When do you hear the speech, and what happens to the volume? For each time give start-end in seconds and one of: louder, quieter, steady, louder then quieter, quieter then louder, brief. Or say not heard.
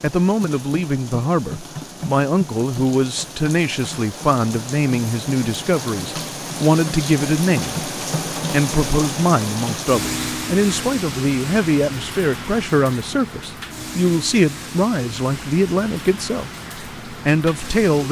0.0-18.0 steady.